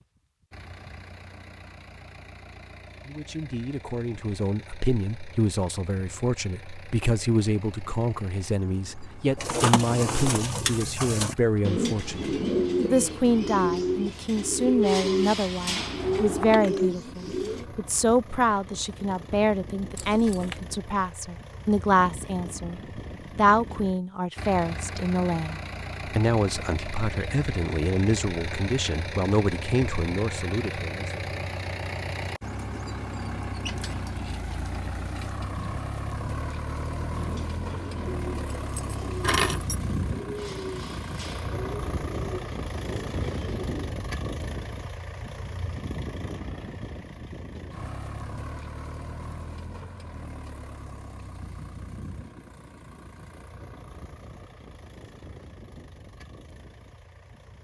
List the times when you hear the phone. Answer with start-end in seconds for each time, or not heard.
not heard.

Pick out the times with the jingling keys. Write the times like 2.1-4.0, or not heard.
15.9-16.9, 19.9-20.6, 38.5-39.8.